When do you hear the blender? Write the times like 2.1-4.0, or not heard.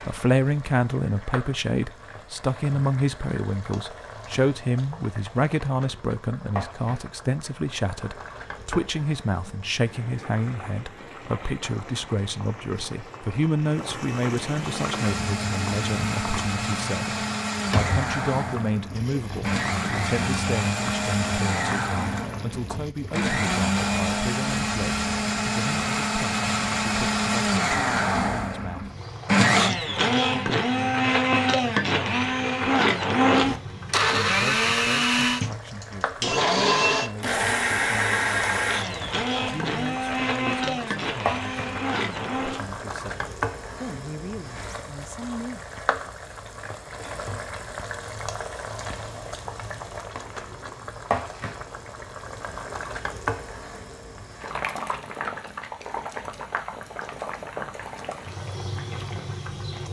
14.5-42.7.